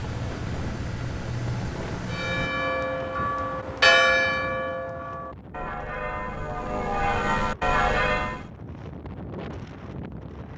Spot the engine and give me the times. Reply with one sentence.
You can hear the engine from 0.0 to 2.5 s.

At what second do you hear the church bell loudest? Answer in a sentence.
The loudest moment of the church bell is at 4 seconds.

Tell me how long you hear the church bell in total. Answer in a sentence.
The church bell can be heard for 6 seconds in total.